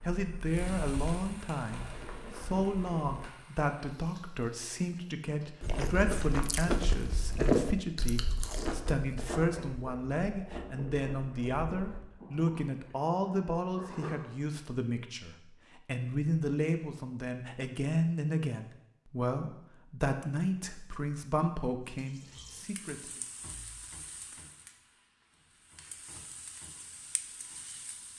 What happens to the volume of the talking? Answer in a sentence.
The loudness of the talking stays about the same.